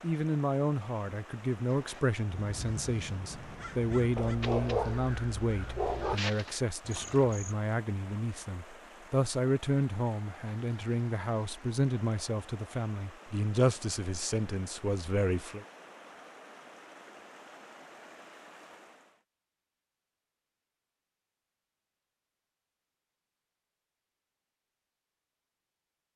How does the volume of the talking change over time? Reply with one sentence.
The loudness of the talking stays about the same.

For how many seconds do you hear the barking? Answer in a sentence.
The barking can be heard for 2 seconds in total.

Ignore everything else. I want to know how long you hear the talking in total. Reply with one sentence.
You can hear the talking for 16 seconds altogether.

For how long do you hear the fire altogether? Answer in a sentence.
The fire can't be heard in this clip.